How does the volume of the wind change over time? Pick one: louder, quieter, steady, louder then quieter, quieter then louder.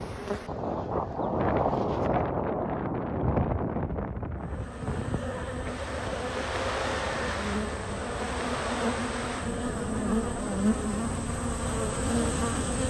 quieter.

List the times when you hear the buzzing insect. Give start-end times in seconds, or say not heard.
0.0-2.2, 4.3-12.8.